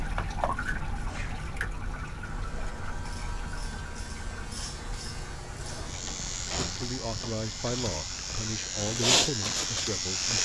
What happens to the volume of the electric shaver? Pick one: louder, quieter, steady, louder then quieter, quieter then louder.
louder.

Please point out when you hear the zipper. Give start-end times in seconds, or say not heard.
not heard.